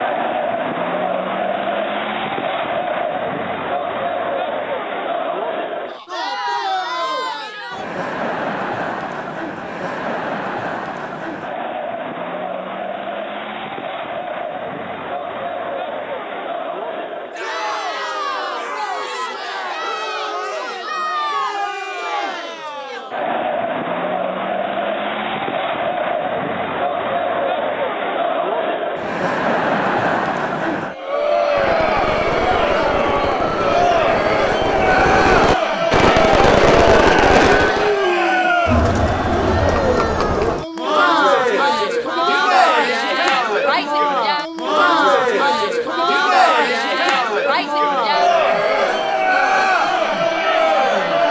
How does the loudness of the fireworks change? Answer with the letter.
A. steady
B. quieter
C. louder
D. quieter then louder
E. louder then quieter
C.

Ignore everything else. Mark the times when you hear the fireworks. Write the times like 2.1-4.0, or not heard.
31.6-38.0.